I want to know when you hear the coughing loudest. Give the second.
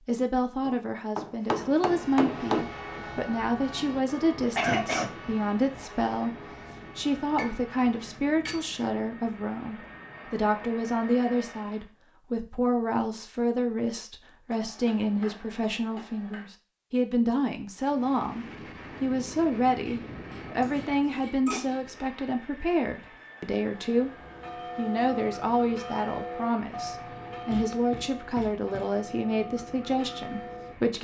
5 s.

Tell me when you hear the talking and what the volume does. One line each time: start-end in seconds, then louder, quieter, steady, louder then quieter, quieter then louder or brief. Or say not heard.
0.0-30.9 steady.